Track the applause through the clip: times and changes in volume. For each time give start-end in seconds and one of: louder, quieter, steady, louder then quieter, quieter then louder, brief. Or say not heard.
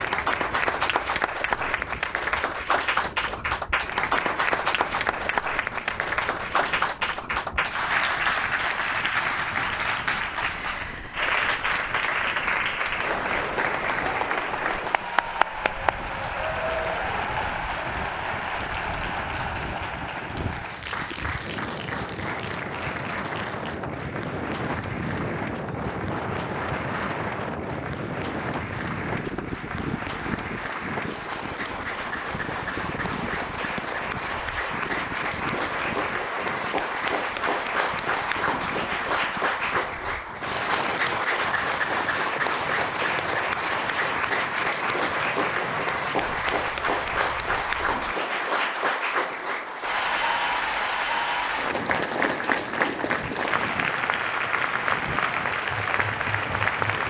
0.0-57.0 quieter then louder.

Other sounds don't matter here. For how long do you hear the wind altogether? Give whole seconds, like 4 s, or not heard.
57 s.